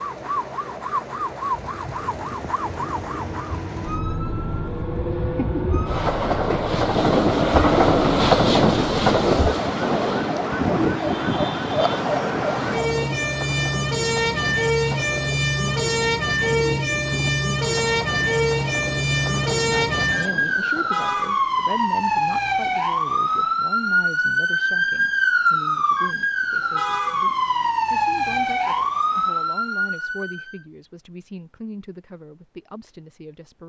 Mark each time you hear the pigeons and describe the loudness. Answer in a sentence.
You can't hear the pigeons here.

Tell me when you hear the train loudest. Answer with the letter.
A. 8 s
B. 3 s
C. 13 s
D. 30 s
A.